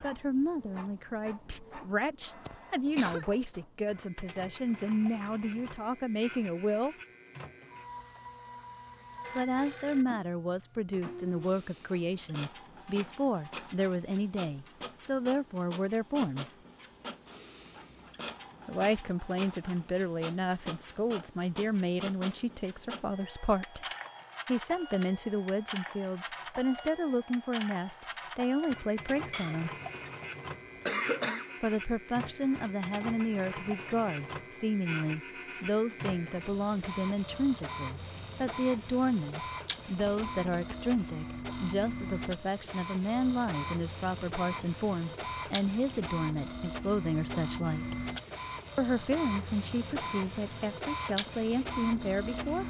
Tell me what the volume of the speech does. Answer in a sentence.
The volume of the speech stays about the same.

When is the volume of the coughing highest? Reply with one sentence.
The volume of the coughing peaks at 31 seconds.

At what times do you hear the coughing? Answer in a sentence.
You can hear the coughing from 2.5 to 3.2 s, from 29.3 to 30.2 s and from 30.9 to 31.5 s.